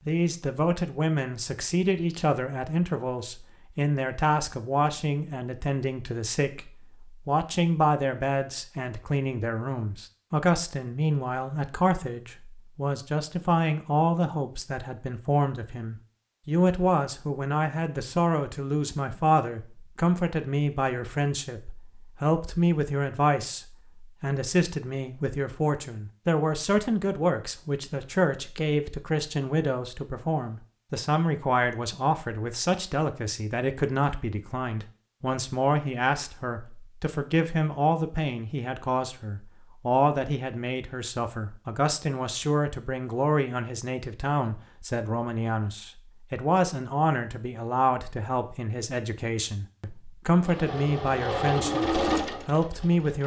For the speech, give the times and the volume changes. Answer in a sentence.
The speech can be heard from 0.1 to 53.2 s, at a steady volume.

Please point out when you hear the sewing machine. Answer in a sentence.
You can hear the sewing machine from 50.4 to 53.2 s.